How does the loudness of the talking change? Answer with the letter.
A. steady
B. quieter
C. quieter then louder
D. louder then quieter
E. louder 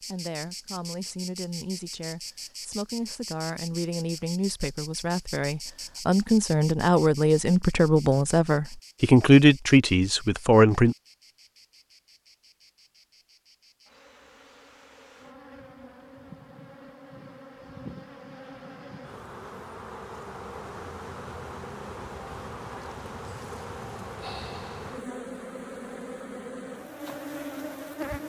E.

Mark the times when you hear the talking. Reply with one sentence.
The talking can be heard from 0.1 to 10.9 s.